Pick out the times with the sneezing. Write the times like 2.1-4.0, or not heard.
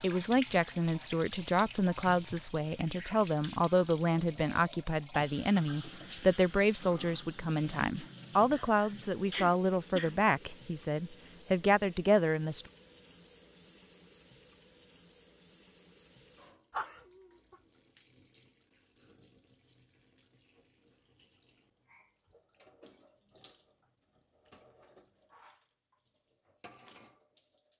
8.5-10.2, 16.7-17.6.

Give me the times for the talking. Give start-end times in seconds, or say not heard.
0.0-12.7.